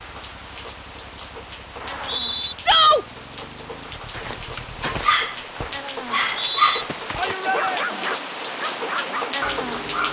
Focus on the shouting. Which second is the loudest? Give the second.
3 s.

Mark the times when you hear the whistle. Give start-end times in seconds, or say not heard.
1.8-2.5, 6.0-6.8.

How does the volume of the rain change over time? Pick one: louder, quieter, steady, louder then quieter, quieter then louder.
louder.